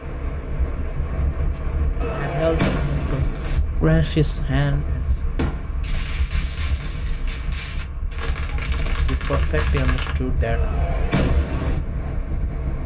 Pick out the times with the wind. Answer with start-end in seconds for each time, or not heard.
0.0-12.8.